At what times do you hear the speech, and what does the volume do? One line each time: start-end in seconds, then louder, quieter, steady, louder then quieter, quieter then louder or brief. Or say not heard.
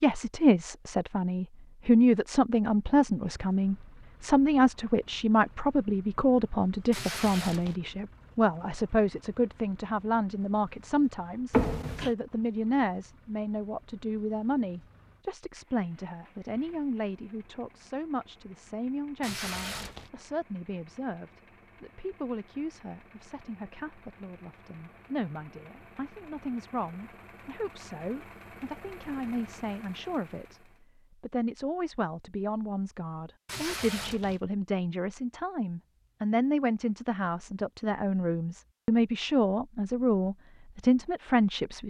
0.0-30.6 quieter
31.2-41.8 louder.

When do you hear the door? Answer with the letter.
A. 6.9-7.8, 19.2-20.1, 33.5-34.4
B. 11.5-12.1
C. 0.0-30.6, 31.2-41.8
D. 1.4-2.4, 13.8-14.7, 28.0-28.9
B.